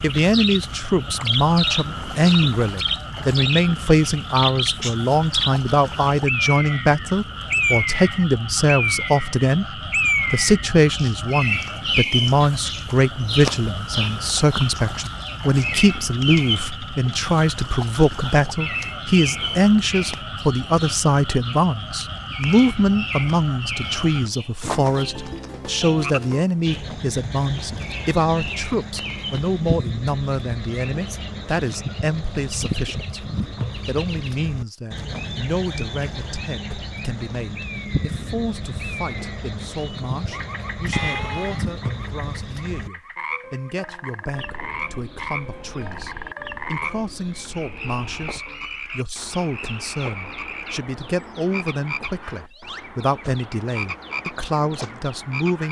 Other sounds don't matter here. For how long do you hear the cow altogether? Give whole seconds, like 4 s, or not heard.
not heard.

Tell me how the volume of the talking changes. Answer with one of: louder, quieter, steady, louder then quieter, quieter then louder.
quieter.